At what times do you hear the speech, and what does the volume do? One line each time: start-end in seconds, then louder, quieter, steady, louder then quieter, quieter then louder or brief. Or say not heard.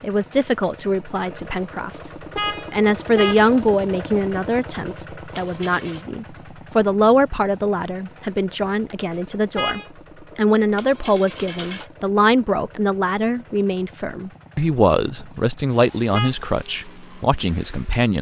0.0-2.1 brief
2.7-18.1 steady.